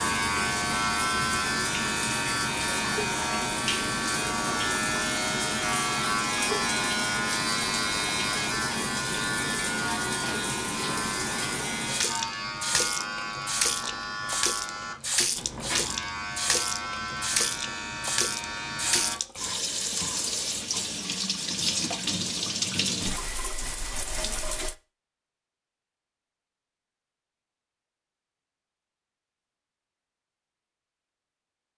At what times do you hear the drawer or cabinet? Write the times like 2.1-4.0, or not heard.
not heard.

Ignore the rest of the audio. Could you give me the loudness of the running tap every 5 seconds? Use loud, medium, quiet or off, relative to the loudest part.
loud, loud, loud, loud, loud, off, off.